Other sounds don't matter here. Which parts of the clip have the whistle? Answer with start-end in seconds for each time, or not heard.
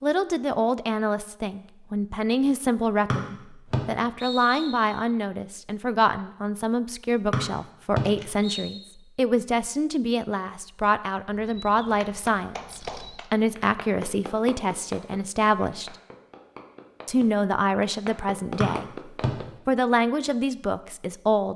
3.1-5.0, 7.3-8.8, 18.6-19.3.